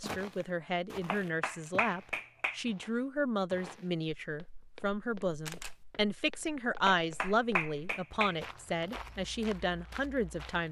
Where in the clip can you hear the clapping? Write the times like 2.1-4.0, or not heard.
1.1-2.6, 6.8-8.4.